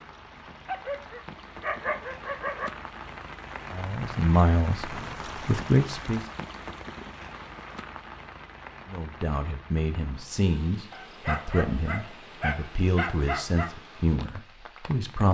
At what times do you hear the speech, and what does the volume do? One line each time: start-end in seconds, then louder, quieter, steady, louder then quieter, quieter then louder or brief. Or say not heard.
3.7-6.2 brief
8.8-15.2 steady.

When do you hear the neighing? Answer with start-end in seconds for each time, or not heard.
not heard.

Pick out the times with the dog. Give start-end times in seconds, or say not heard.
0.7-2.7, 10.9-13.8.